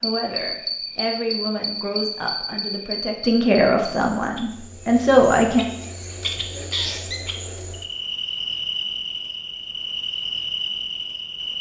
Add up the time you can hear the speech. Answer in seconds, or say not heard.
6 s.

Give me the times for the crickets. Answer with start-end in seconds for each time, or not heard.
0.0-11.5.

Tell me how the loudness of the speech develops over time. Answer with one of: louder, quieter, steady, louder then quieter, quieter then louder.
louder.